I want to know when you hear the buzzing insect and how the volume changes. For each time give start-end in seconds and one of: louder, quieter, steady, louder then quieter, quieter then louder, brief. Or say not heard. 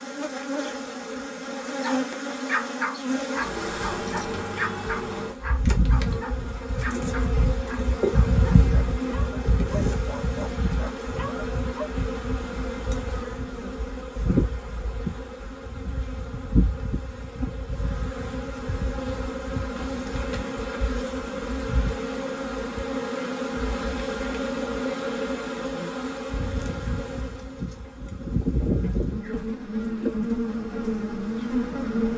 0.0-32.1 steady.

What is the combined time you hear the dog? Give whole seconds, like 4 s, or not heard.
10 s.